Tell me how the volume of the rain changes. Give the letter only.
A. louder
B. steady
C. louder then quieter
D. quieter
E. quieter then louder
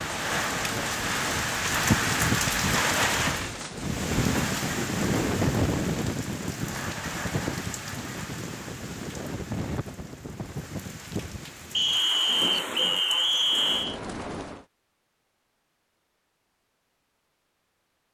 D.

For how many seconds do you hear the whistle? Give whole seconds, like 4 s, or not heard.
2 s.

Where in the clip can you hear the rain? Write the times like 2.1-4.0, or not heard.
0.0-14.7.